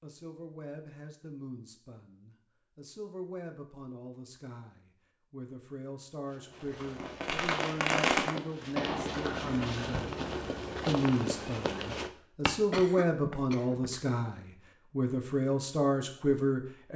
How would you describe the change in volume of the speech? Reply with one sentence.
The volume of the speech goes up.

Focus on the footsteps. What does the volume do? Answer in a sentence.
The loudness of the footsteps goes up.